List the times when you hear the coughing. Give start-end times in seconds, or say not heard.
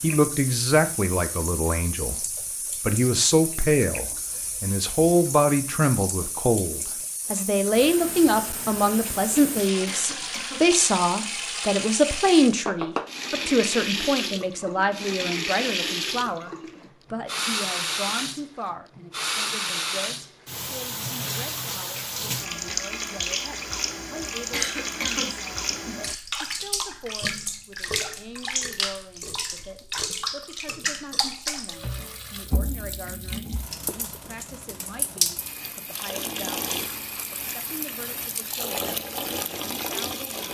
9.8-11.3, 24.5-26.0.